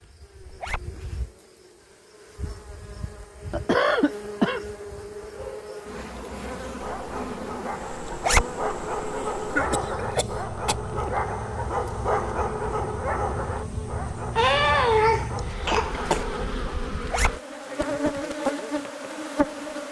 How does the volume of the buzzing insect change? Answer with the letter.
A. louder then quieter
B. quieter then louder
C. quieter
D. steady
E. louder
E.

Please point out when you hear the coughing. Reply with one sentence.
The coughing can be heard from 3.5 to 4.7 s, from 9.5 to 10.8 s and from 14.3 to 16.2 s.